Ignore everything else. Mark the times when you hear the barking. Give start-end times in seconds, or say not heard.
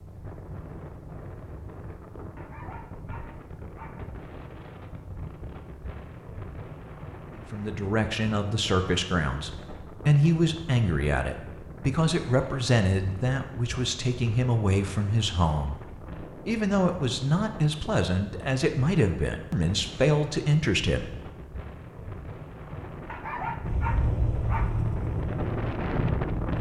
2.4-4.0, 23.1-24.8.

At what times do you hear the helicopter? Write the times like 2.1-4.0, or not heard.
23.6-26.5.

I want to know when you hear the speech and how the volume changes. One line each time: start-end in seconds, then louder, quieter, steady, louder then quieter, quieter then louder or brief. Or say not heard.
7.3-21.1 steady.